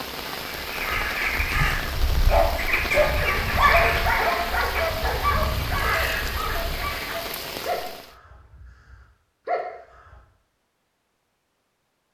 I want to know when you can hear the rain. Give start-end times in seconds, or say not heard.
0.0-8.2.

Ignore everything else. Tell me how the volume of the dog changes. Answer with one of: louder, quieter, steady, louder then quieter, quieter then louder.
quieter.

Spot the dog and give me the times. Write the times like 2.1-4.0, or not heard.
2.2-10.2.